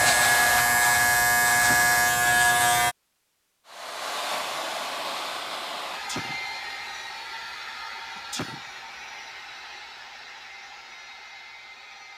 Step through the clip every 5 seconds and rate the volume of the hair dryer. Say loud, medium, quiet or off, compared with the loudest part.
loud, medium, quiet.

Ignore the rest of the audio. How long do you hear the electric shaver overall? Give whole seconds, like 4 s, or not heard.
3 s.